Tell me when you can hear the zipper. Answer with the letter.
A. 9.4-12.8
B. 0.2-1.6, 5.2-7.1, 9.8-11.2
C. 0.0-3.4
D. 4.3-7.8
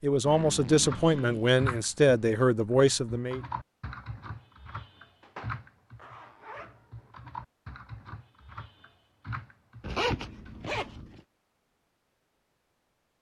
B.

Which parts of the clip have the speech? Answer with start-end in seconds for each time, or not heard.
0.0-3.4.